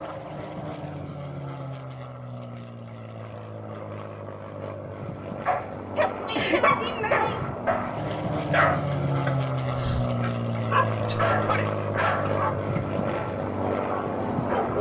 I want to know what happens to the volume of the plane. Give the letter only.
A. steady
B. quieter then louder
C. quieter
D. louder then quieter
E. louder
E.